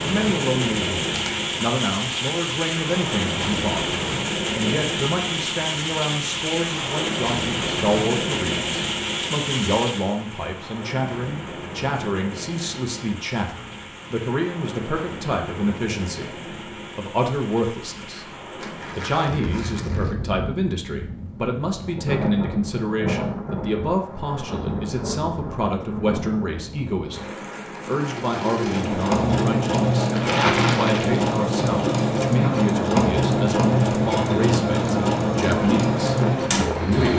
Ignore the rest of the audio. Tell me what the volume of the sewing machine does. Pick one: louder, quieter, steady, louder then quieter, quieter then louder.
steady.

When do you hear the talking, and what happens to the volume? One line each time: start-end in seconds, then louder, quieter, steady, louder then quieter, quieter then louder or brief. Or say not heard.
0.0-37.1 steady.